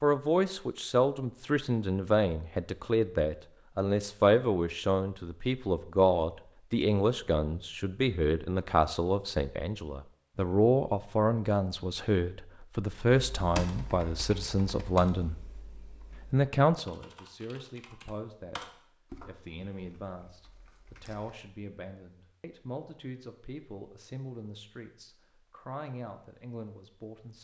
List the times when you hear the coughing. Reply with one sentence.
You can't hear the coughing here.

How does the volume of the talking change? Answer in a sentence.
The volume of the talking goes down.